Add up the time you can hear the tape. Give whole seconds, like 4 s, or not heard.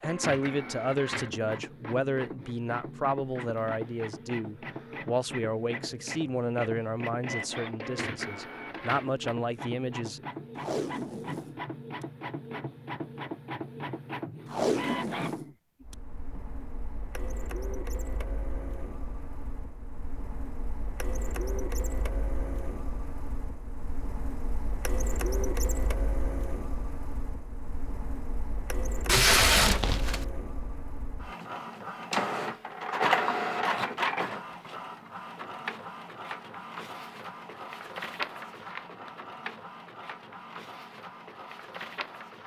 5 s.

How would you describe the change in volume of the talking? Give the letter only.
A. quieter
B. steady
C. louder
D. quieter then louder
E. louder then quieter
B.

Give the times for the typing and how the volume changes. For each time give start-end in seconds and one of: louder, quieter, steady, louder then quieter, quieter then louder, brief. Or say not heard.
not heard.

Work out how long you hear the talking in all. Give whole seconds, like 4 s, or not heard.
10 s.